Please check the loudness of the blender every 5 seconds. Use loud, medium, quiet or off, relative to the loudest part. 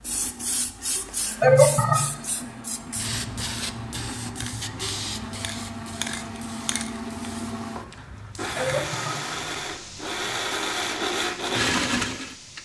quiet, medium, loud.